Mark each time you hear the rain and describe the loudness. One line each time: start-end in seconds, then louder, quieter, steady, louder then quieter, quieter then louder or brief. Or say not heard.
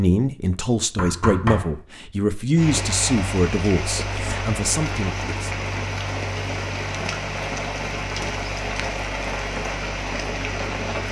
2.5-11.0 steady.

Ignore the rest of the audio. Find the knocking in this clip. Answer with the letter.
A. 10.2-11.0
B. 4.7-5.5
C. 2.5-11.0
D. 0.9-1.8
D.